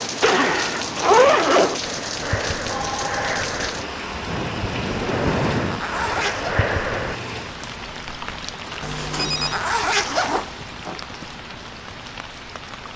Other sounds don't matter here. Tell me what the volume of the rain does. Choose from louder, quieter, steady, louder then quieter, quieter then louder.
quieter.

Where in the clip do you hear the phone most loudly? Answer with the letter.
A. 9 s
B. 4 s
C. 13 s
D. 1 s
A.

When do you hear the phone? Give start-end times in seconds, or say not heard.
2.7-3.4, 8.8-9.6.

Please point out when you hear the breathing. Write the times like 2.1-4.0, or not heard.
1.8-7.2.